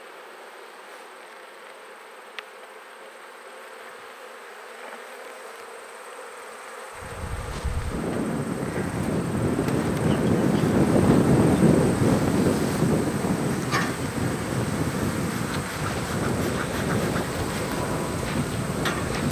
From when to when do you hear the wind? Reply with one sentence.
The wind can be heard from 7.0 to 19.2 s.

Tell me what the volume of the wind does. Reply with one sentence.
The loudness of the wind goes up, then down.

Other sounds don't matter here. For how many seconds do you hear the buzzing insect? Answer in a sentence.
You can hear the buzzing insect for 19 seconds altogether.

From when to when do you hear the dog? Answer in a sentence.
The dog can't be heard in this clip.